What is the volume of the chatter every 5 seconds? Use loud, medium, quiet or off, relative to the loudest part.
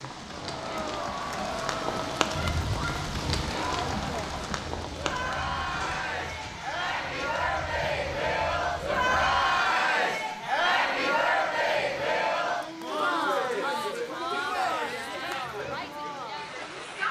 medium, loud, loud, medium.